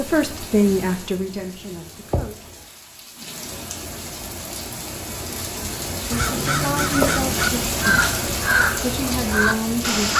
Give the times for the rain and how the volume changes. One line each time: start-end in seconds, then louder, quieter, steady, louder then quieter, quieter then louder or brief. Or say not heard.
0.0-10.1 louder.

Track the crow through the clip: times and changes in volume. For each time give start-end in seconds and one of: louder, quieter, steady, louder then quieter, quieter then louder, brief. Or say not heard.
6.1-10.1 steady.